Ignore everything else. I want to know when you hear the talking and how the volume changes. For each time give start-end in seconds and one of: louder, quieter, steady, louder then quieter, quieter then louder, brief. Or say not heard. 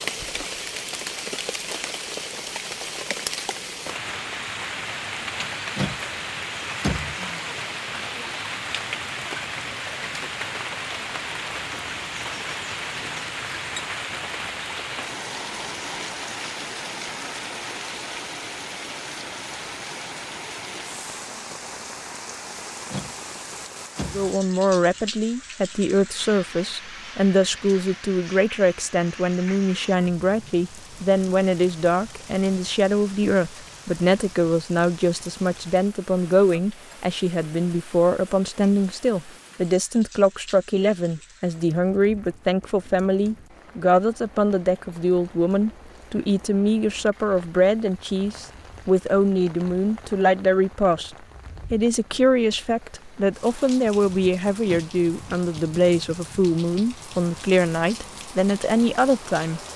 24.1-51.1 steady
51.7-59.6 steady.